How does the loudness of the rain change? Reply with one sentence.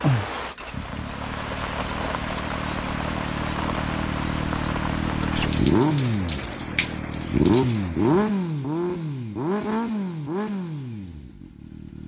The volume of the rain stays about the same.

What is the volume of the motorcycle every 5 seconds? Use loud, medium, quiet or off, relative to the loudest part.
medium, loud, medium.